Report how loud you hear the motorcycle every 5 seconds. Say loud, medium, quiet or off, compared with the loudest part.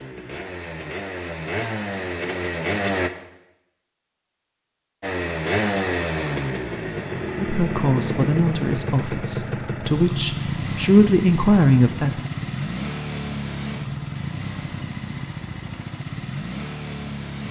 loud, loud, loud, medium.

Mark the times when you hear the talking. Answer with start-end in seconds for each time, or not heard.
7.3-12.2.